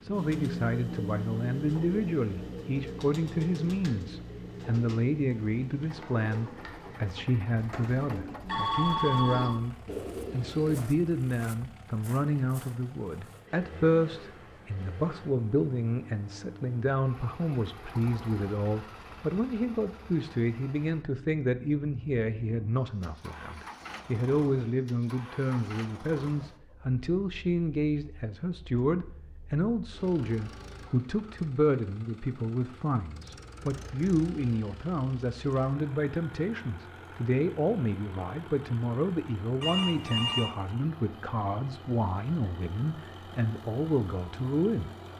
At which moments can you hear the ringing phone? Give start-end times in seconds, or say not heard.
8.4-9.6, 39.6-40.5.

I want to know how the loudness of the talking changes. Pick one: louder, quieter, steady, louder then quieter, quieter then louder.
steady.